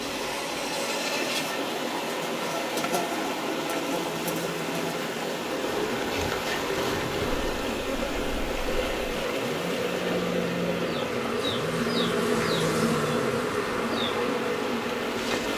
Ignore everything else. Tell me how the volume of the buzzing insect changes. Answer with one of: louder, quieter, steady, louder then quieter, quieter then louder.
louder.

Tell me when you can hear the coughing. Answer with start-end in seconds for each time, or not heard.
not heard.